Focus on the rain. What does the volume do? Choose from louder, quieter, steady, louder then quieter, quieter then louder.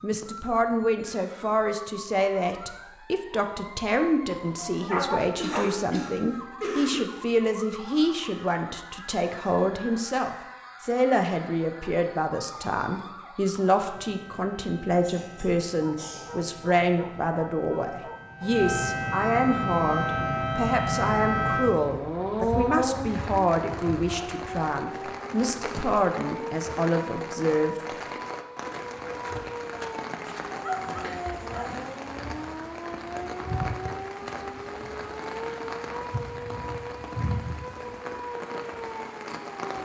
steady.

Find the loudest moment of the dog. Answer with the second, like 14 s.
5 s.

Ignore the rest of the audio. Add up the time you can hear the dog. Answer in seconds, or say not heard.
6 s.